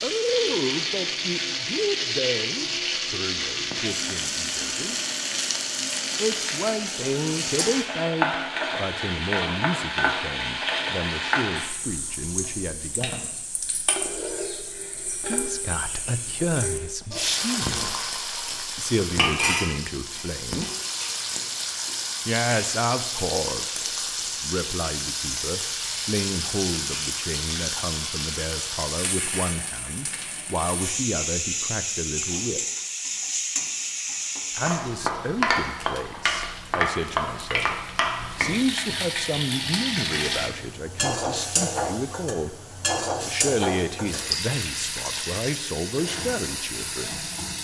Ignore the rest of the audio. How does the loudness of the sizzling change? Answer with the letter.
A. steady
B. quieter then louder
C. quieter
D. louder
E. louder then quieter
A.